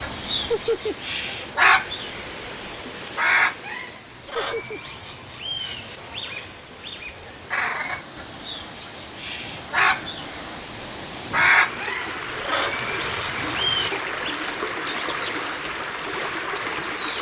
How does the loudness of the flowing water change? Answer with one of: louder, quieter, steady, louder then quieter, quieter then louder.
quieter then louder.